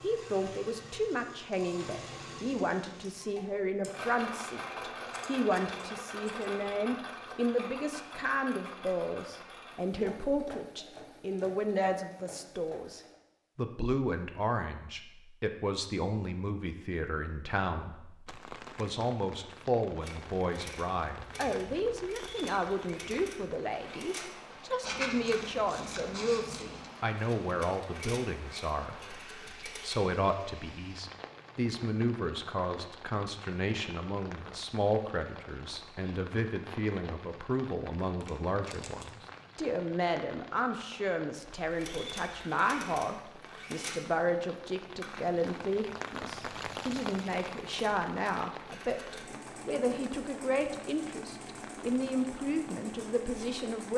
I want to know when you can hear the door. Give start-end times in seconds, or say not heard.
not heard.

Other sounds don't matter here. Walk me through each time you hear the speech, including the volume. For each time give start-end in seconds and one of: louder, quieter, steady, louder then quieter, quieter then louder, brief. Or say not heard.
0.0-53.9 steady.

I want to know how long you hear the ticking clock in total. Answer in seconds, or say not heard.
not heard.